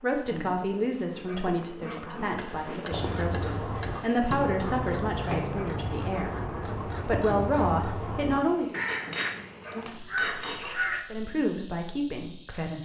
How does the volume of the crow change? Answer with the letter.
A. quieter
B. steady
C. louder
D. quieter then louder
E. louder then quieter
B.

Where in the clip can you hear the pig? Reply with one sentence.
You can't hear the pig here.